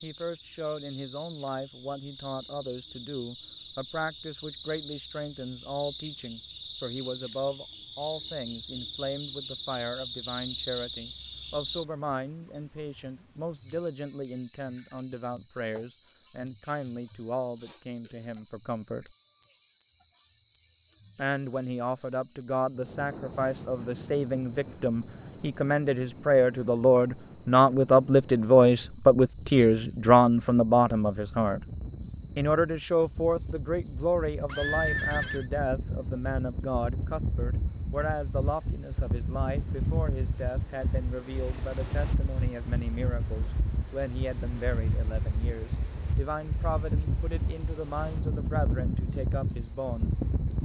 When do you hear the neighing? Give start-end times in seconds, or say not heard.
34.5-35.5.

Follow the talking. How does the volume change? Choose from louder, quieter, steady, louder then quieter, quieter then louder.
louder then quieter.